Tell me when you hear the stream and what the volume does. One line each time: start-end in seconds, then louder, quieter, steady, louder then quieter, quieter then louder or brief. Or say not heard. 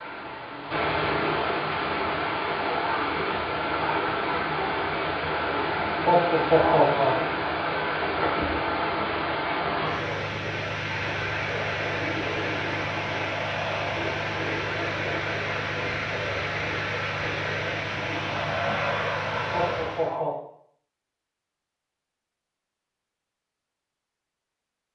0.0-20.2 steady.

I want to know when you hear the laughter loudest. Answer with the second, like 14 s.
7 s.